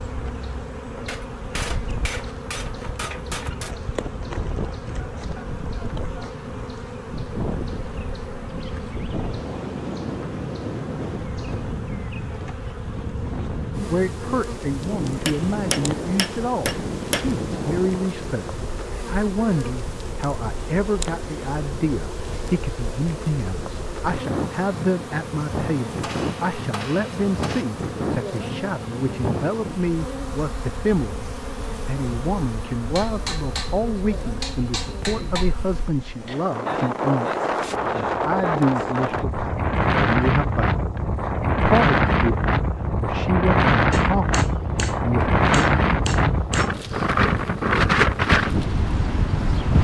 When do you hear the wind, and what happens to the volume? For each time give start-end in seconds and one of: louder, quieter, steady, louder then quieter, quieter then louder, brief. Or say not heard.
0.0-49.8 louder.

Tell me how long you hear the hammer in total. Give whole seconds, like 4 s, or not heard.
12 s.